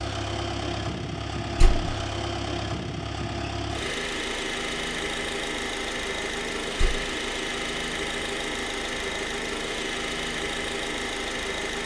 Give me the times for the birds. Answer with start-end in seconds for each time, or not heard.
not heard.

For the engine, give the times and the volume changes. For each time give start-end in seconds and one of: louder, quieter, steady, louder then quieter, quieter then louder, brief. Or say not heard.
0.0-11.8 steady.